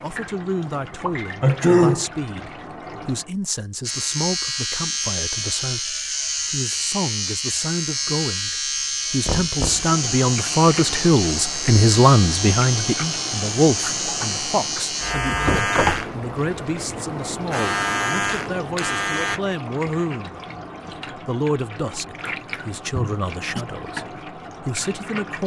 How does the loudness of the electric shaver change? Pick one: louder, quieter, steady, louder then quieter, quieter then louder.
steady.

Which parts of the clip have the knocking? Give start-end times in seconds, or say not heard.
9.2-9.9, 15.4-16.1.